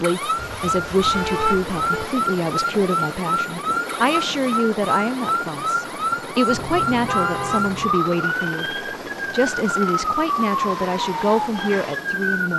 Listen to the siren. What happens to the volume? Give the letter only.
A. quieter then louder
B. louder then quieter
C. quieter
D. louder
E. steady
E.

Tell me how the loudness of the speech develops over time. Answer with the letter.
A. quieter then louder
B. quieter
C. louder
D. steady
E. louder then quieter
D.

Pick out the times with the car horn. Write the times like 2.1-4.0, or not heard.
0.3-2.1, 6.5-8.0.